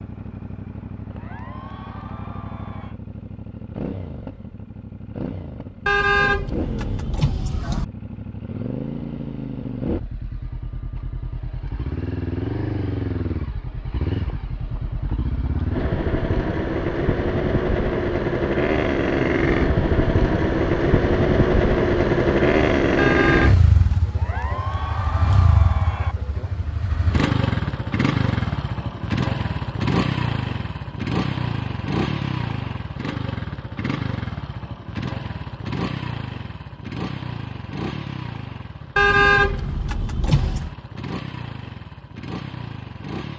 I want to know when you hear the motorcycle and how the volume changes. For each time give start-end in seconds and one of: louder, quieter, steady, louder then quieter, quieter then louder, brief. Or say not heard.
0.0-43.3 louder then quieter.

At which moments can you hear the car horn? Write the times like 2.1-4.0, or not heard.
5.8-7.8, 22.9-23.9, 39.0-40.7.